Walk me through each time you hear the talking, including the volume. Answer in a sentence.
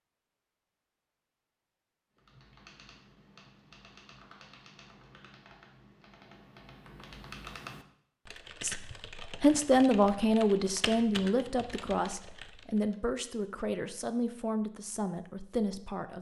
The talking can be heard from 8.6 to 16.1 s, getting quieter.